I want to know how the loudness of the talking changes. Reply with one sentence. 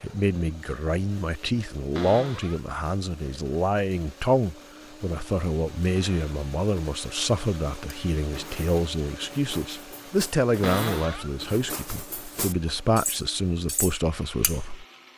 The volume of the talking stays about the same.